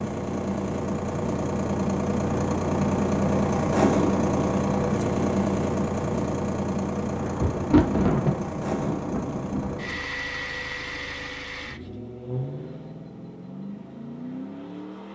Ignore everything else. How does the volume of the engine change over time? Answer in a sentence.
The volume of the engine goes down.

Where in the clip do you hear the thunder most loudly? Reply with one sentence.
The volume of the thunder peaks at 8 seconds.